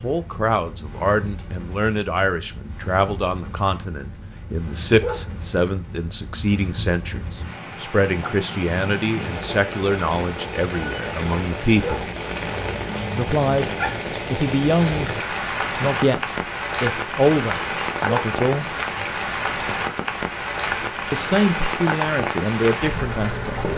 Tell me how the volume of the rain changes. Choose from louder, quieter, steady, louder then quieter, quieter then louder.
louder.